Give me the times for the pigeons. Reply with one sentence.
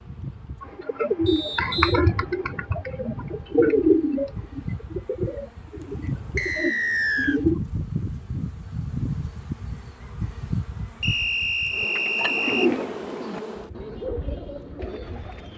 The pigeons can be heard from 0.6 to 7.6 s and from 11.9 to 15.5 s.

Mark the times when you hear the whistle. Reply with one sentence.
You can hear the whistle from 1.2 to 2.0 s, from 6.3 to 7.4 s and from 11.0 to 12.7 s.